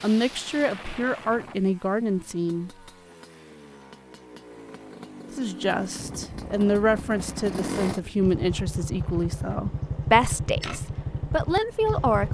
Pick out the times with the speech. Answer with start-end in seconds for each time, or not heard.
0.0-2.7, 5.3-12.2.